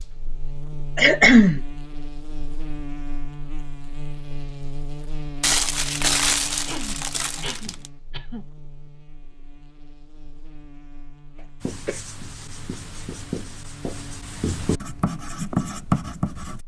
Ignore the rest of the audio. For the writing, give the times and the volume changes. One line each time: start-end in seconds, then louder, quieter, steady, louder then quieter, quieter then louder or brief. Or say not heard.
11.6-16.6 louder.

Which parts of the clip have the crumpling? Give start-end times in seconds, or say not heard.
5.4-7.9.